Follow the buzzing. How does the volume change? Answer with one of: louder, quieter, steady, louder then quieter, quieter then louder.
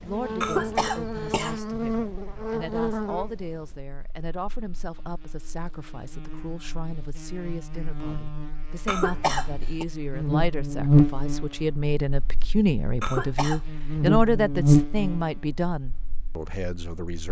quieter then louder.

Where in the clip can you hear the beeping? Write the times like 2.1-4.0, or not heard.
not heard.